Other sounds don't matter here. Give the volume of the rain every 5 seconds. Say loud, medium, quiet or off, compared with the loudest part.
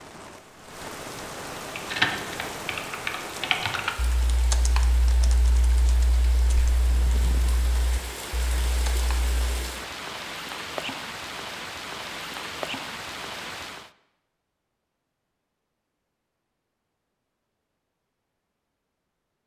loud, loud, loud, off.